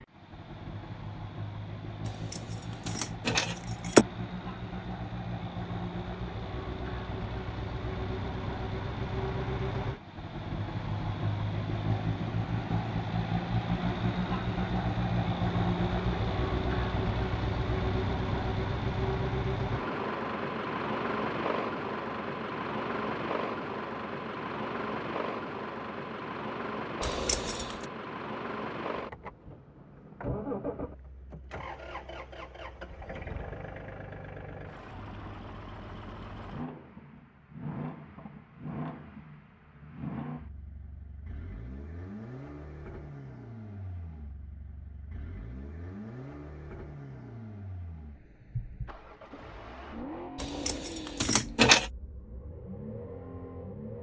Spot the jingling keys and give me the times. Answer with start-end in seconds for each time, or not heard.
2.0-4.0, 27.0-27.9, 50.4-51.9.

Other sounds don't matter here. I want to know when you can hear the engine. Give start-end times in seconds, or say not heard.
0.0-53.9.